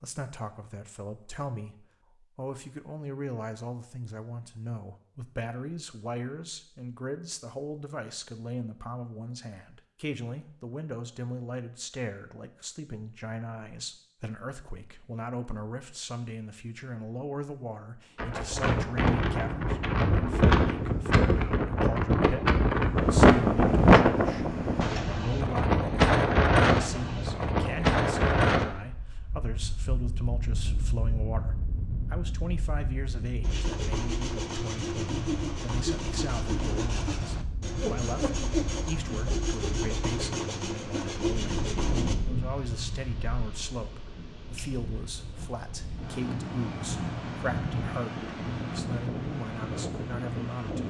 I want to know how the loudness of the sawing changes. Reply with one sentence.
The volume of the sawing stays about the same.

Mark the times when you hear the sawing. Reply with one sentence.
The sawing can be heard from 33.4 to 42.1 s.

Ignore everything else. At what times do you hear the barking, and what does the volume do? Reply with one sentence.
You can't hear the barking here.